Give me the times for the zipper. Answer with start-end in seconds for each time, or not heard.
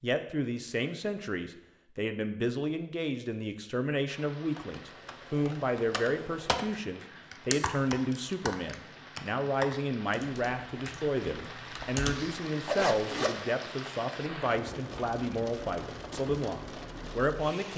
11.8-13.4.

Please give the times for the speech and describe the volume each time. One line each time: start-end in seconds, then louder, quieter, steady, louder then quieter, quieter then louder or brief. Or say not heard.
0.0-17.7 steady.